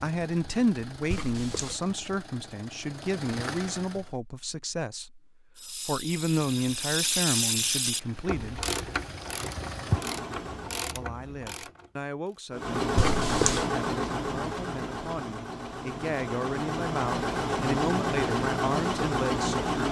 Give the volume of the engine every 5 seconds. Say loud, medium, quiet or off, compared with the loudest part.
quiet, medium, loud, loud.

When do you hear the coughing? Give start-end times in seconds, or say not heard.
1.1-1.8, 12.9-13.7.